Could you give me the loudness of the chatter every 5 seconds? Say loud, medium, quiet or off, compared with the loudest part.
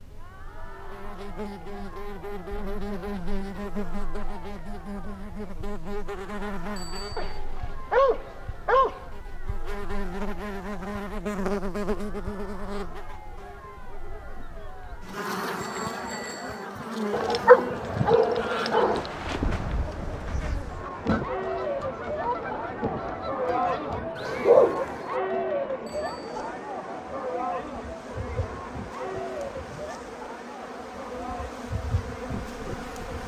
quiet, quiet, quiet, medium, loud, loud, medium.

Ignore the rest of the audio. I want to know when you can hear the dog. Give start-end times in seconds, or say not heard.
7.2-9.1, 17.1-19.0, 23.4-24.9.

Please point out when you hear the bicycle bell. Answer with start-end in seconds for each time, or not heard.
6.8-7.4, 15.6-16.6, 25.9-26.4.